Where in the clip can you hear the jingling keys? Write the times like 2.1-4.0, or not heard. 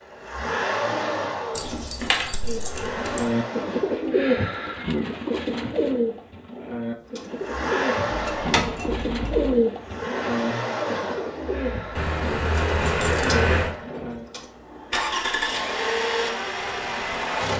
1.6-3.3, 8.1-9.6, 11.9-13.7.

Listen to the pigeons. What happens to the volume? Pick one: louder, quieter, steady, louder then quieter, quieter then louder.
quieter.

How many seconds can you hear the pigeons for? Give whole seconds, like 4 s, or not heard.
12 s.